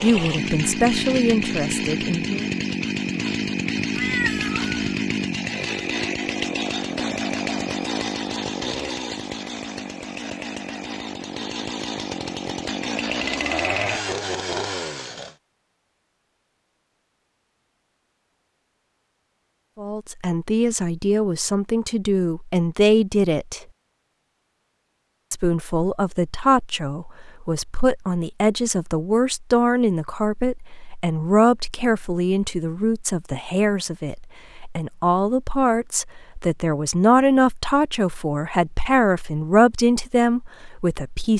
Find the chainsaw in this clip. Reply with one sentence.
The chainsaw can be heard from 0.0 to 15.3 s.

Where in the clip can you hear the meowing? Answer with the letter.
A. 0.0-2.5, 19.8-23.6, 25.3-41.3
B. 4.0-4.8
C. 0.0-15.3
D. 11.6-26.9
B.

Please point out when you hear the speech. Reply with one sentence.
You can hear the speech from 0.0 to 2.5 s, from 19.8 to 23.6 s and from 25.3 to 41.3 s.